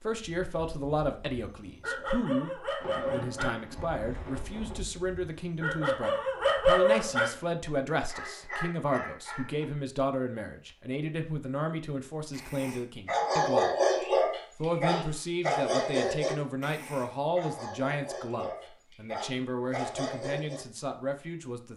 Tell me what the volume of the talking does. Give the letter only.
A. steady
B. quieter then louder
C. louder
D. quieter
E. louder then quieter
A.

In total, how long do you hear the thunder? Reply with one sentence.
The thunder can be heard for 2 seconds in total.